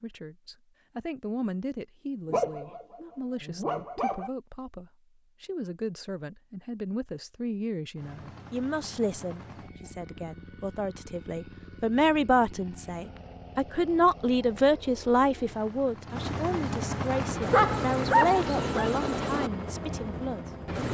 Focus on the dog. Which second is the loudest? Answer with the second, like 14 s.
18 s.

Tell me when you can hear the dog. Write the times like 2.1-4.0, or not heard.
2.2-4.3, 17.1-18.9.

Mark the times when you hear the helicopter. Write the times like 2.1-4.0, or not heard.
8.0-20.8.